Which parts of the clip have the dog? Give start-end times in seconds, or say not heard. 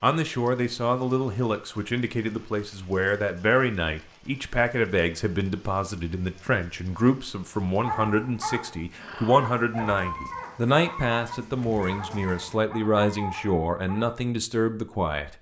7.8-14.2.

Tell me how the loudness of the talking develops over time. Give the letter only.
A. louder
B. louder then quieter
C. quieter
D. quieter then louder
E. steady
E.